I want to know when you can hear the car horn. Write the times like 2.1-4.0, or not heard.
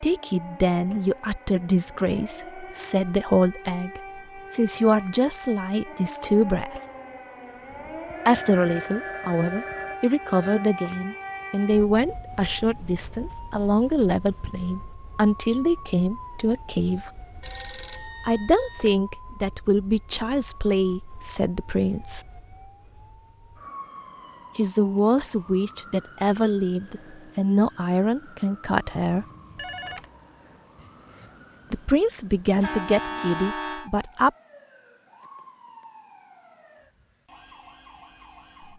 32.6-33.9.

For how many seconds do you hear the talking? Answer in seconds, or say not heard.
27 s.